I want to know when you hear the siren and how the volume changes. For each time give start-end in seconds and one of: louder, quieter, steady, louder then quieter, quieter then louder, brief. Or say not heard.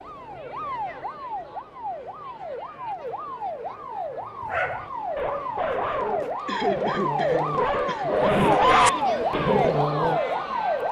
0.0-10.8 louder.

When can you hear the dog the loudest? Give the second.
9 s.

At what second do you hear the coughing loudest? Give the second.
7 s.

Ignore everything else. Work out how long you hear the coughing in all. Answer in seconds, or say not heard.
2 s.